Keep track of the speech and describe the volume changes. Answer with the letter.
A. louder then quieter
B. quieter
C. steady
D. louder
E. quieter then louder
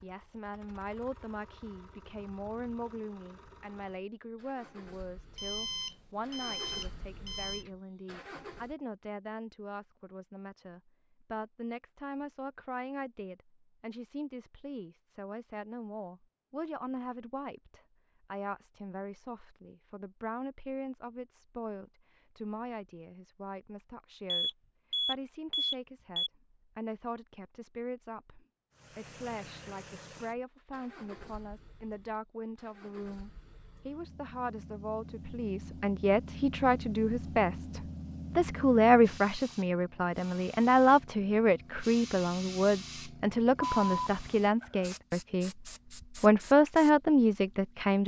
D.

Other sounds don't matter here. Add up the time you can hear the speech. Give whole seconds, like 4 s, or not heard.
48 s.